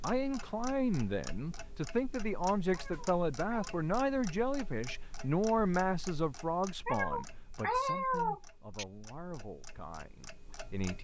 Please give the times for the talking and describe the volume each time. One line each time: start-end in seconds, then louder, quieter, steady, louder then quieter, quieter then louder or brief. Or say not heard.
0.0-10.9 quieter.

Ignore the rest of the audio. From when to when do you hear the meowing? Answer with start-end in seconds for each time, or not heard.
2.7-3.8, 6.8-8.8.